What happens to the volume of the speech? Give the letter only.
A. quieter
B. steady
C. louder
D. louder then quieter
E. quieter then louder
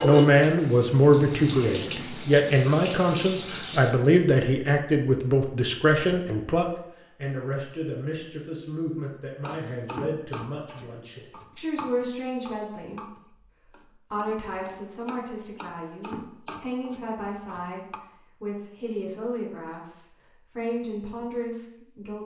A.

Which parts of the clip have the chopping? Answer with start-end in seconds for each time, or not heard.
9.4-18.0.